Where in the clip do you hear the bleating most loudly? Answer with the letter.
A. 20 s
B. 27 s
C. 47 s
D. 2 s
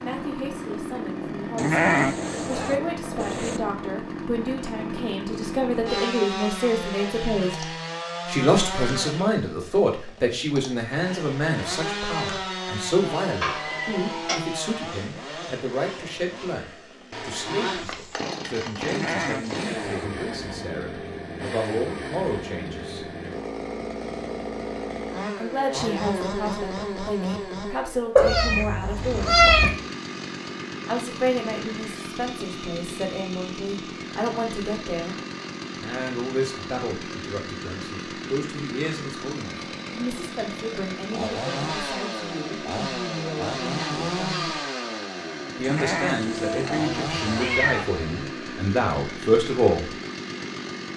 D.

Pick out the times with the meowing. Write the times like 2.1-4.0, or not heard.
13.4-14.4, 28.1-29.7, 46.2-48.0.